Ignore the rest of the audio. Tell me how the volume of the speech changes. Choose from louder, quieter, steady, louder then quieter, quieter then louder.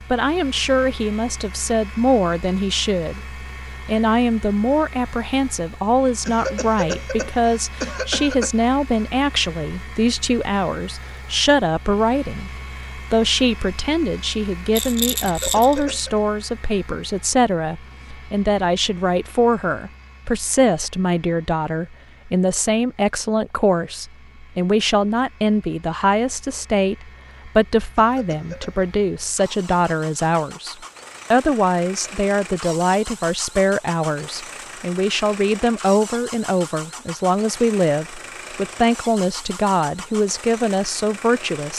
steady.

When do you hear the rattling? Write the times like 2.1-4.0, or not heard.
14.7-15.8.